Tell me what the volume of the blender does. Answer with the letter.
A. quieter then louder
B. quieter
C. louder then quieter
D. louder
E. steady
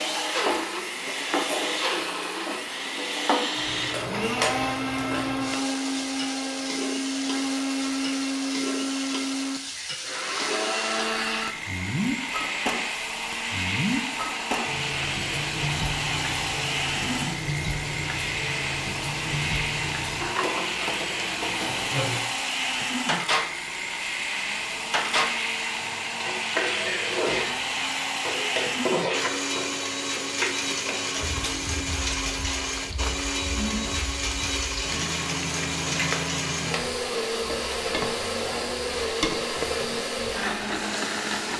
E.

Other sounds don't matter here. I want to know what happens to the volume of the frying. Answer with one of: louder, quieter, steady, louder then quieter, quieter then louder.
steady.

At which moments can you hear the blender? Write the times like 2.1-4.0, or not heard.
0.0-41.5.